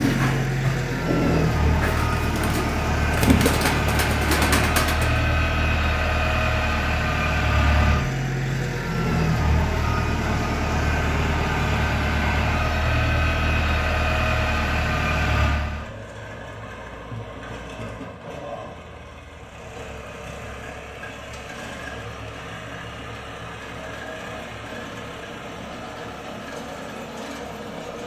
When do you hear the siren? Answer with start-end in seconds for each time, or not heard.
not heard.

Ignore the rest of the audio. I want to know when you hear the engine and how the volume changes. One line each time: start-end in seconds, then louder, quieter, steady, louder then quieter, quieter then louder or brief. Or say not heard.
0.0-28.0 quieter.